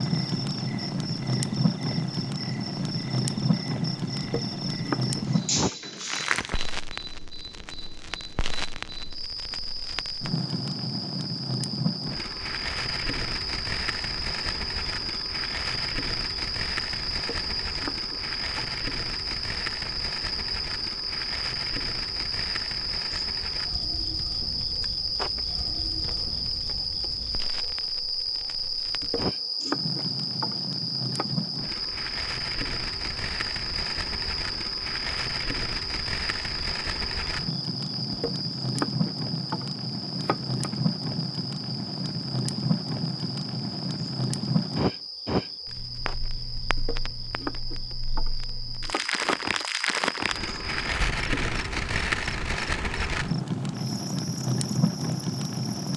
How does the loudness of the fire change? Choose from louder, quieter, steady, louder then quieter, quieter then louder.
quieter then louder.